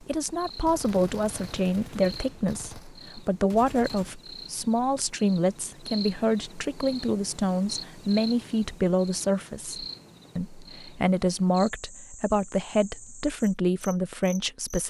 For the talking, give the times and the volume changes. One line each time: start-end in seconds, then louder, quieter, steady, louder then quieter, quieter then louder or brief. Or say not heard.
0.0-14.8 steady.